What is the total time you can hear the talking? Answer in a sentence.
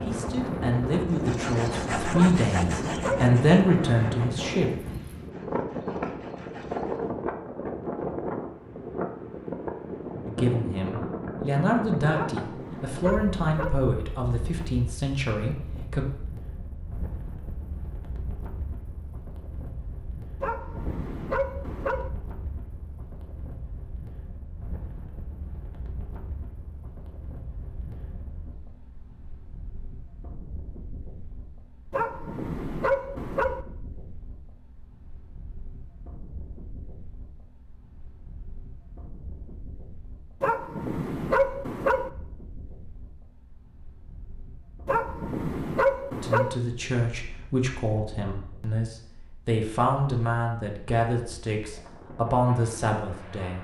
You can hear the talking for 18 seconds altogether.